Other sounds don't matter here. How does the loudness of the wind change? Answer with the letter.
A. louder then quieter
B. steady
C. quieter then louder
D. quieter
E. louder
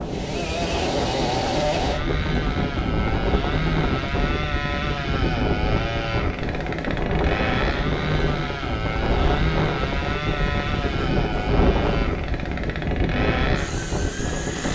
B.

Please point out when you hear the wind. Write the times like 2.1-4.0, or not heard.
0.0-14.7.